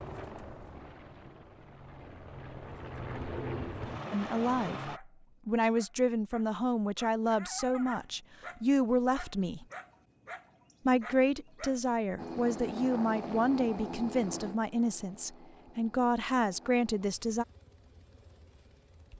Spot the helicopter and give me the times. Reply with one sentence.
You can hear the helicopter from 0.0 to 5.0 s and from 12.2 to 19.1 s.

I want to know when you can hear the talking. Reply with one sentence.
You can hear the talking from 4.1 to 9.7 s and from 10.8 to 17.4 s.